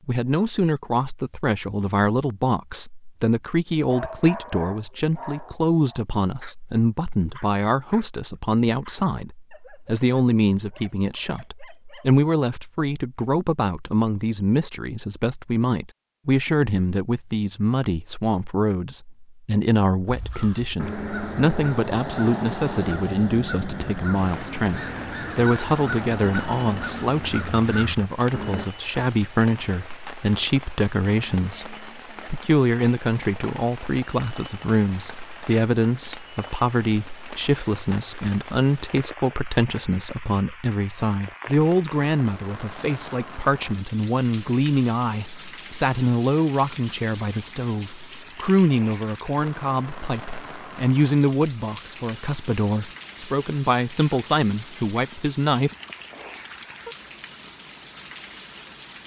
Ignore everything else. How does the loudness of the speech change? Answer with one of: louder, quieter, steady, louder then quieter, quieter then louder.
steady.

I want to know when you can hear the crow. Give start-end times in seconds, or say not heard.
20.1-28.6.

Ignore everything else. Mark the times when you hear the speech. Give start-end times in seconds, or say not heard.
0.1-55.8.